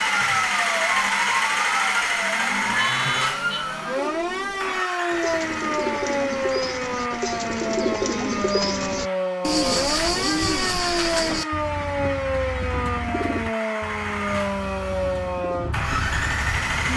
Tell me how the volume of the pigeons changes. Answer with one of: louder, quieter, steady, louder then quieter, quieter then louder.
louder then quieter.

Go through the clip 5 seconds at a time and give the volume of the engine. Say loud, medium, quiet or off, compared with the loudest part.
loud, medium, medium, loud.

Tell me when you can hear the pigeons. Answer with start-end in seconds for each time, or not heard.
3.8-15.8.